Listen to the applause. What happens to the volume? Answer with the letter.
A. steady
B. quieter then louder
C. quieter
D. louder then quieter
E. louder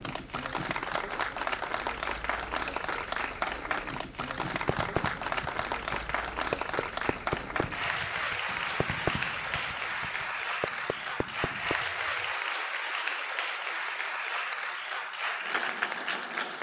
A.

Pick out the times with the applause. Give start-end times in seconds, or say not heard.
0.0-16.5.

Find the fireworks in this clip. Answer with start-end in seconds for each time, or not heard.
4.4-11.8.